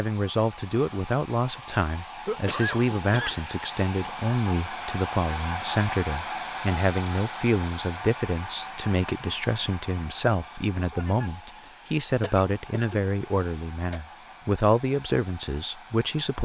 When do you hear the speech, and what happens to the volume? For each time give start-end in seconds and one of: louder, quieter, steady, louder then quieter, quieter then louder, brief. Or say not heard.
0.0-16.4 steady.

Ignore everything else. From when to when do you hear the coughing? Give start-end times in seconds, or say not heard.
2.2-3.5, 12.2-14.0.